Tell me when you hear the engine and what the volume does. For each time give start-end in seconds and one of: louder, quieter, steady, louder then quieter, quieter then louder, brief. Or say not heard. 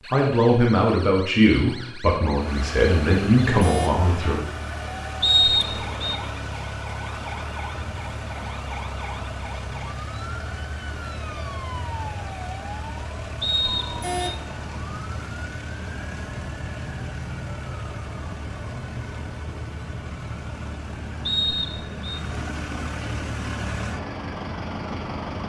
2.3-25.4 steady.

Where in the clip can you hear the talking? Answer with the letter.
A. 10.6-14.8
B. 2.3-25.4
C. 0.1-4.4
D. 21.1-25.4
C.